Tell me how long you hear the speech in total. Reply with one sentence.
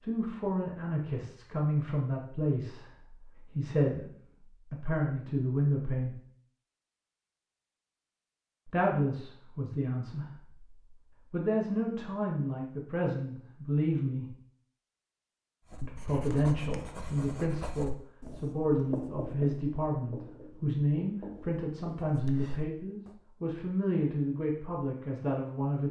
You can hear the speech for 22 seconds altogether.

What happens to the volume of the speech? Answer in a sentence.
The volume of the speech stays about the same.